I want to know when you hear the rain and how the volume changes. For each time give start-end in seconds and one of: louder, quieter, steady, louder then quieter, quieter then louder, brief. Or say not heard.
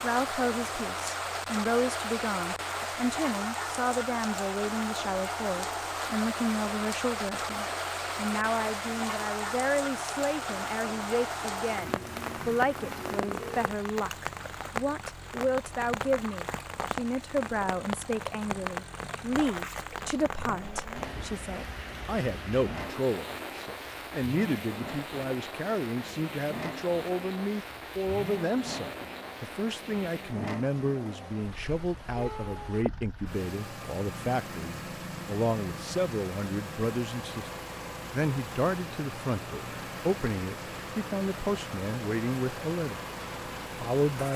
0.0-44.3 quieter.